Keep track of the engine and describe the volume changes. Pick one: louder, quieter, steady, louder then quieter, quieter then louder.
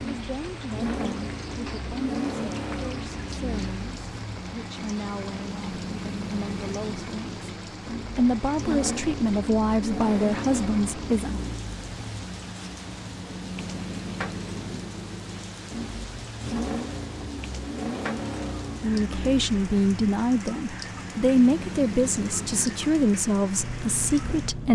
steady.